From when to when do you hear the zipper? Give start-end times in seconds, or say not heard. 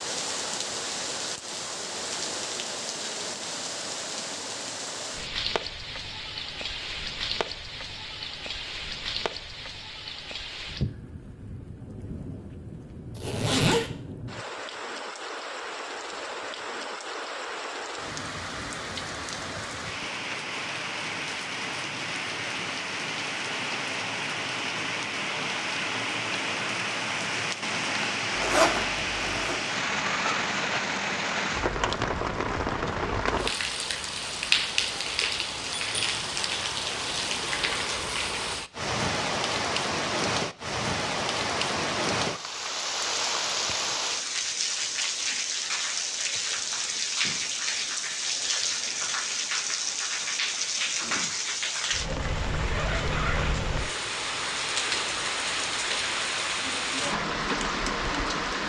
13.2-13.8, 28.4-29.6, 52.2-53.9.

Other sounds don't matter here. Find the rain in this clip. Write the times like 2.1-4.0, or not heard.
0.0-58.6.